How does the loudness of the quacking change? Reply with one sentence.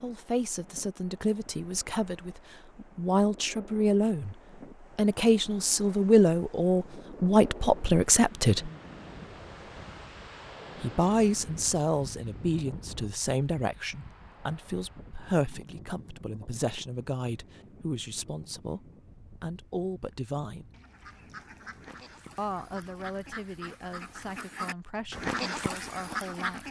The loudness of the quacking goes up.